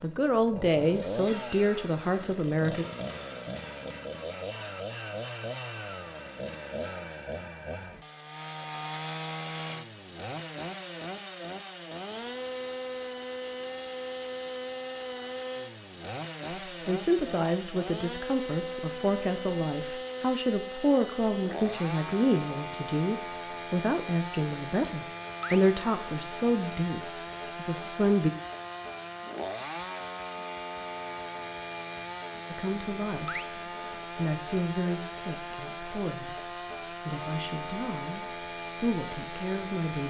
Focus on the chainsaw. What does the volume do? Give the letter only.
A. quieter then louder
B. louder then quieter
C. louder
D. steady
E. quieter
D.